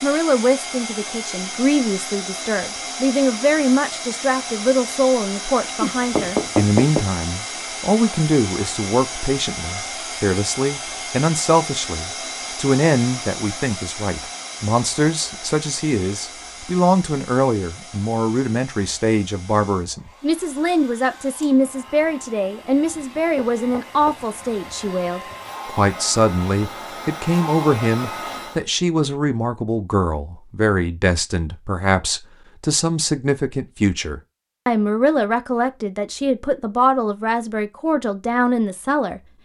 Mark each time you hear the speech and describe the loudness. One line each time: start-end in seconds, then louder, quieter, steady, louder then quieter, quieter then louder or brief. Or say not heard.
0.0-39.2 steady.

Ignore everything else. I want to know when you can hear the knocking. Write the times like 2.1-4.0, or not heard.
5.8-7.0, 23.4-24.2.